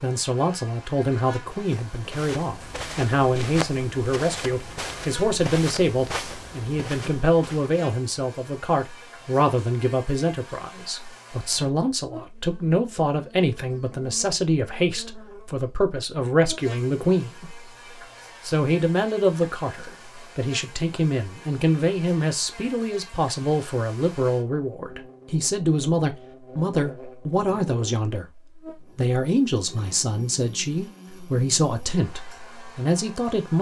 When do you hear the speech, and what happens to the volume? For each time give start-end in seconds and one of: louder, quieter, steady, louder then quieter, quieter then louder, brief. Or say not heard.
0.0-17.6 steady
18.4-28.2 steady
28.9-33.5 steady.